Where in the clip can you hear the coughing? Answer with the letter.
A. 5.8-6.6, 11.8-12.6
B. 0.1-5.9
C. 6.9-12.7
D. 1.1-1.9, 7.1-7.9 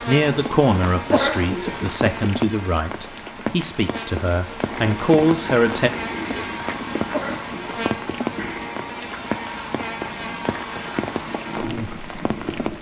D.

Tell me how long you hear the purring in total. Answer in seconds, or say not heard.
8 s.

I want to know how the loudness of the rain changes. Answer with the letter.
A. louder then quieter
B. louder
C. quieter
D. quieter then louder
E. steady
E.